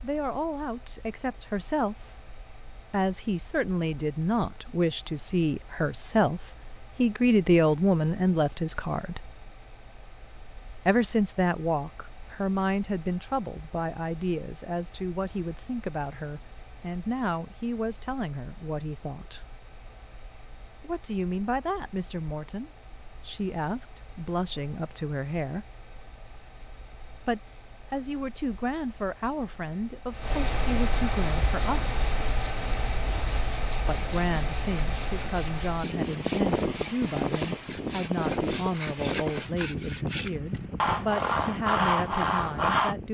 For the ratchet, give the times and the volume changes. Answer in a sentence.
The ratchet can't be heard in this clip.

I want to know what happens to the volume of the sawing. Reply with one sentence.
The loudness of the sawing goes up.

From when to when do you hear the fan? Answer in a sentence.
You can hear the fan from 0.0 to 43.1 s.